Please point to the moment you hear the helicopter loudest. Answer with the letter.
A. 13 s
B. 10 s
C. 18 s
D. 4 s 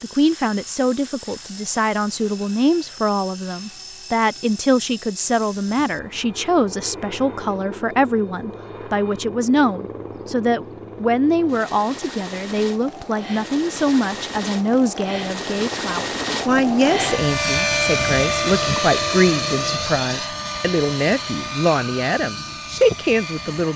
C.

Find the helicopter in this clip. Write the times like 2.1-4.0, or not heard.
0.0-23.7.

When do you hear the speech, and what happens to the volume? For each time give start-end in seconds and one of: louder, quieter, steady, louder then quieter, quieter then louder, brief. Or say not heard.
0.0-23.7 steady.